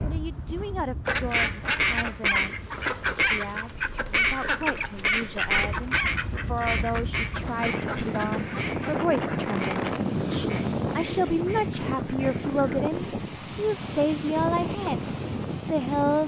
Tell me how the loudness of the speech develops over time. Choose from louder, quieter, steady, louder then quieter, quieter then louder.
louder.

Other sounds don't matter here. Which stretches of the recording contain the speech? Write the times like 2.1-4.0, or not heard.
0.0-16.2.